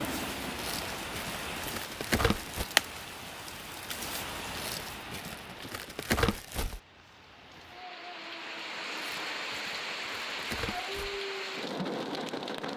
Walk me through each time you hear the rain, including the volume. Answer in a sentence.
The rain can be heard from 0.0 to 12.7 s, getting quieter then louder.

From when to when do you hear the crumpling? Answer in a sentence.
You can hear the crumpling from 0.6 to 2.6 s, from 4.5 to 6.8 s and from 8.9 to 11.2 s.